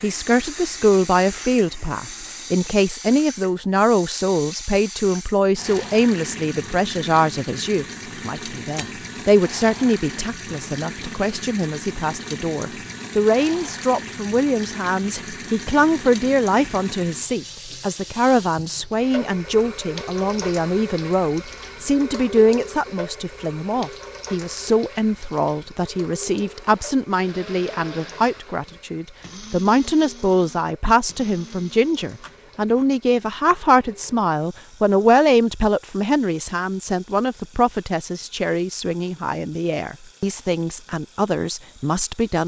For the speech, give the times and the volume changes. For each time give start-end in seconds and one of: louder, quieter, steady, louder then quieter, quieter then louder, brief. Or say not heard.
0.0-42.4 steady.